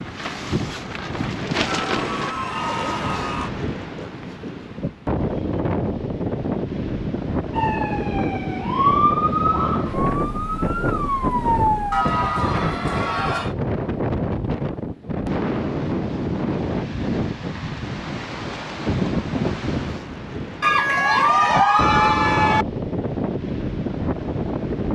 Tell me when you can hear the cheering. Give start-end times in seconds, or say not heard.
1.6-3.5, 11.9-13.6, 20.6-22.6.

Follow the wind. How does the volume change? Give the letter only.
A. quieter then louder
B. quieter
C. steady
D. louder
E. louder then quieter
C.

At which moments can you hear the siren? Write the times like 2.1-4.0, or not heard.
7.5-12.1.